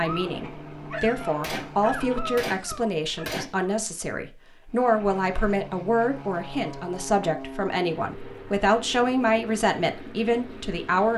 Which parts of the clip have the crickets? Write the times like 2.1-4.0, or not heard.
not heard.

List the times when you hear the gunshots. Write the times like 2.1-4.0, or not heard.
1.4-3.8.